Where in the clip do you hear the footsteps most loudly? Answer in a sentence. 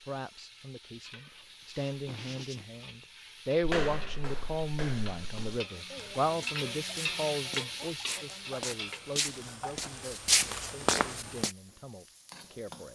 The loudest moment of the footsteps is at 10 seconds.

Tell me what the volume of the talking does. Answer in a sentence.
The volume of the talking goes up, then down.